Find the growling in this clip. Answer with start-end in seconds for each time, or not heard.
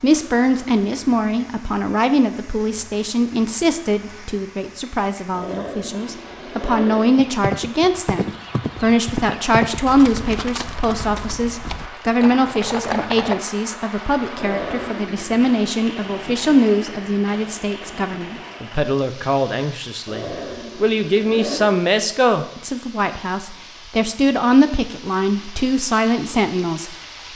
5.3-7.1, 14.3-15.4, 20.1-21.8.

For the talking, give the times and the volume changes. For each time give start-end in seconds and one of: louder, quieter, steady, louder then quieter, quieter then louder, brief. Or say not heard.
0.0-26.9 steady.